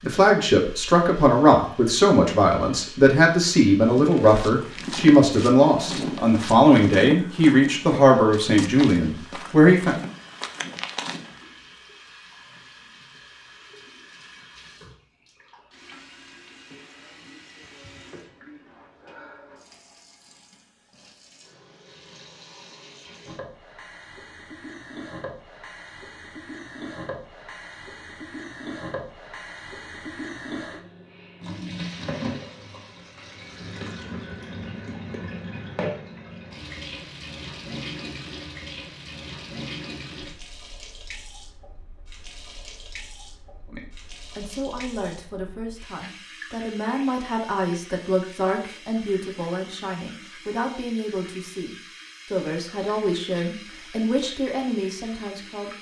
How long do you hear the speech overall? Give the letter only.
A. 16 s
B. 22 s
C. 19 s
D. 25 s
B.